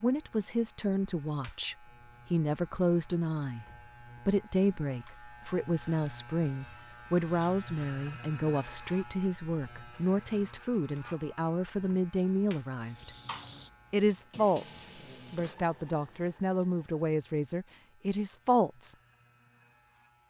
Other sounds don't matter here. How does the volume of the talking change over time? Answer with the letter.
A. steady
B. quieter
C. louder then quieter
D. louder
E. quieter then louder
A.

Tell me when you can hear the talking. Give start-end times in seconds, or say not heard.
0.0-3.6, 4.2-13.1, 13.9-18.9.